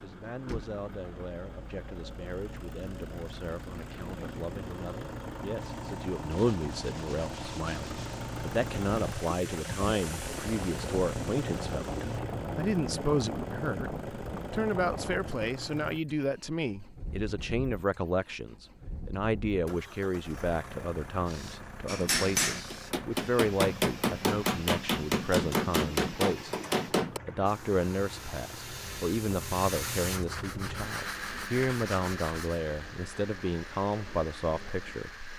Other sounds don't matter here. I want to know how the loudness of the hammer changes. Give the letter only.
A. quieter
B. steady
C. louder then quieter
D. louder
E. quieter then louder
B.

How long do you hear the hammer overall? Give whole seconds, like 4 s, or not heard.
5 s.